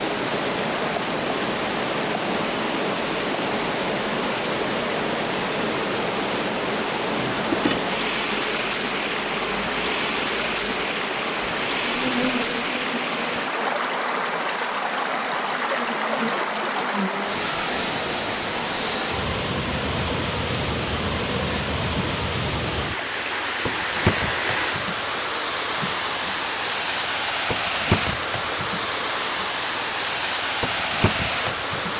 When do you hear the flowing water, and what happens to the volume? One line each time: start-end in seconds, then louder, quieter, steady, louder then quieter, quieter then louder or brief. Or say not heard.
0.0-31.9 steady.